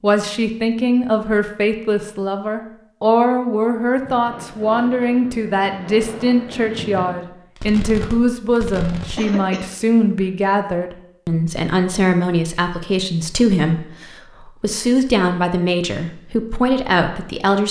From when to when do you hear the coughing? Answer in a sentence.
You can hear the coughing from 9.2 to 9.7 s.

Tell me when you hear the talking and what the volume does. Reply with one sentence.
You can hear the talking from 0.0 to 17.6 s, at a steady volume.